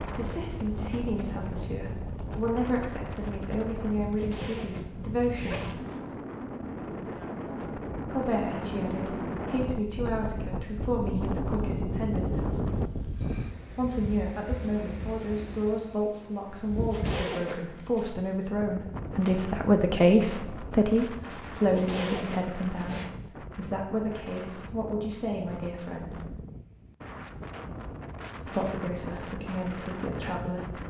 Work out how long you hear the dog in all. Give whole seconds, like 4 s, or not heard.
not heard.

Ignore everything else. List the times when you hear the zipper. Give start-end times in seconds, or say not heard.
4.0-6.2, 16.6-18.1, 21.6-23.1.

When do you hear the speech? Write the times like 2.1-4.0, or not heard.
0.0-5.8, 8.1-12.5, 13.7-26.3, 28.4-30.8.